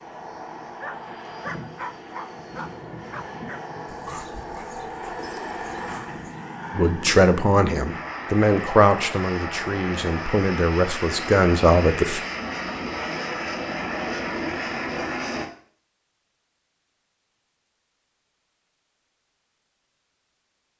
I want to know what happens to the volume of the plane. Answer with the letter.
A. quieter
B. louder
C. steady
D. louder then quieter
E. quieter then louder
B.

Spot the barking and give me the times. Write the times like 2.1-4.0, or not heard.
0.8-6.5.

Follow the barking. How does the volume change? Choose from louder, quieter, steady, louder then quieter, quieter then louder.
quieter.